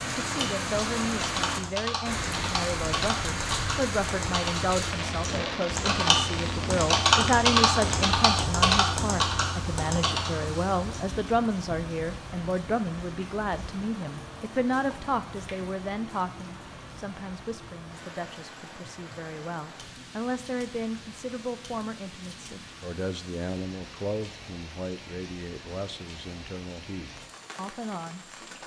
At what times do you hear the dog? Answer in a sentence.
The dog can't be heard in this clip.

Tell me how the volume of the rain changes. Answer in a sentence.
The volume of the rain goes down.